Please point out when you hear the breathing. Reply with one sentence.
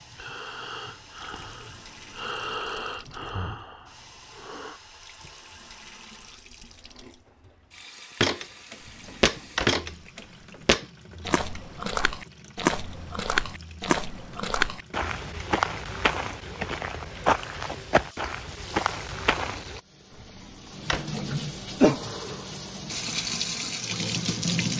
You can hear the breathing from 0.0 to 4.8 s.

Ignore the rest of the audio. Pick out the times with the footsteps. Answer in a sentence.
You can hear the footsteps from 8.2 to 19.8 s.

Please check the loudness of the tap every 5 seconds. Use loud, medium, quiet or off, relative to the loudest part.
quiet, quiet, quiet, quiet, loud.